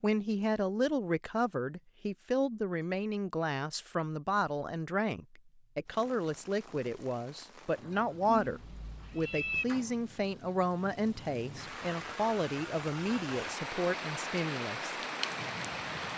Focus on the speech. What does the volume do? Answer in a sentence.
The loudness of the speech stays about the same.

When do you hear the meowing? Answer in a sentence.
The meowing can be heard from 8.3 to 9.7 s.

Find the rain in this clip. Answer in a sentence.
You can hear the rain from 5.8 to 16.1 s.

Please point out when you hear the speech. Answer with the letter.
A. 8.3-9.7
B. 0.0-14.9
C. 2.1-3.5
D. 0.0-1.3
B.